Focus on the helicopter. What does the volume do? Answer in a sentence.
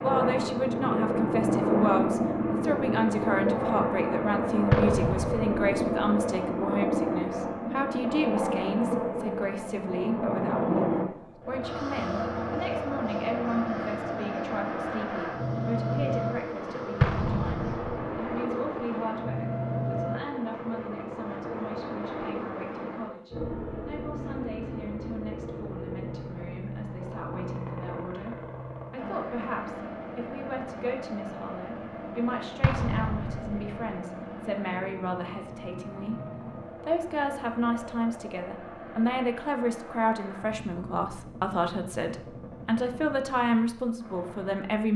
The volume of the helicopter goes down.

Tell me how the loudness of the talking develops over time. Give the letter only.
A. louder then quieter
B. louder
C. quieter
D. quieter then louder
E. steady
D.